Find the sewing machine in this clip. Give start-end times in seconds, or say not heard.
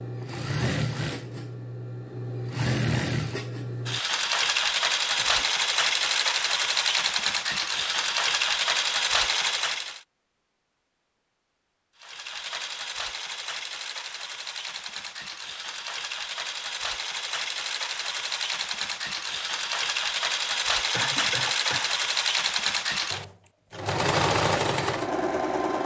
0.0-10.0, 12.0-25.8.